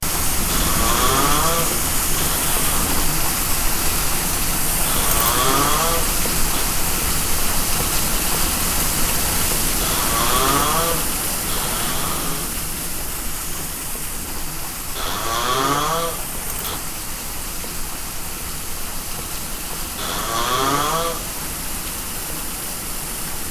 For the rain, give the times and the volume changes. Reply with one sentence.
You can hear the rain from 0.0 to 23.4 s, getting quieter.